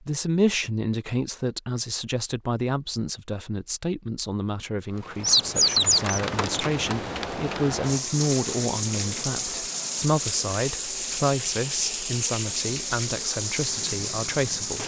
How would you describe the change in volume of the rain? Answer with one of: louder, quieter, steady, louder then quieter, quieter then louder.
steady.